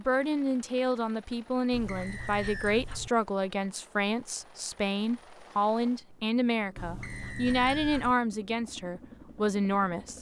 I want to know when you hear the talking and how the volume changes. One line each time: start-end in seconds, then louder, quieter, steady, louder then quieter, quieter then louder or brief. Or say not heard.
0.0-10.1 steady.